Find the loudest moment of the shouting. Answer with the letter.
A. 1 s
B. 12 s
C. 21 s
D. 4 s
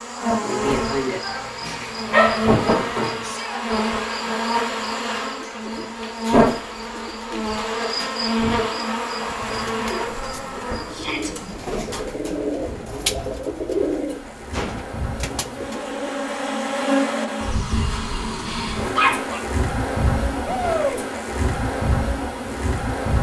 C.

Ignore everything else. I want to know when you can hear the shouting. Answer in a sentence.
You can hear the shouting from 3.2 to 3.6 s, from 10.9 to 11.3 s and from 20.4 to 21.1 s.